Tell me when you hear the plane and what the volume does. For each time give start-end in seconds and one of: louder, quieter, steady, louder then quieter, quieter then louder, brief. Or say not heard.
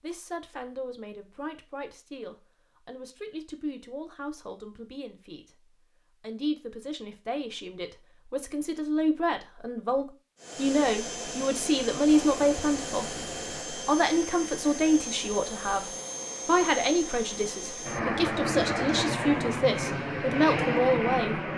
10.3-21.5 louder.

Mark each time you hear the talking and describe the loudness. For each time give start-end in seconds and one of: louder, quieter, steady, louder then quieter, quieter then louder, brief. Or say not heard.
0.0-21.5 louder.